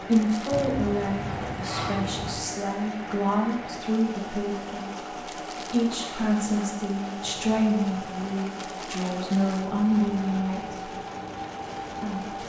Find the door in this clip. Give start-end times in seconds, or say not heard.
0.5-2.5, 7.2-8.3.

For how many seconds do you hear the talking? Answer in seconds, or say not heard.
11 s.